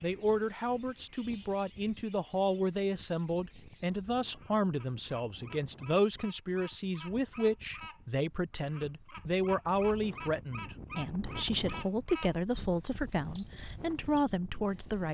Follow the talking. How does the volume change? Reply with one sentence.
The loudness of the talking stays about the same.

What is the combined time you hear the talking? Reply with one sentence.
You can hear the talking for 15 seconds altogether.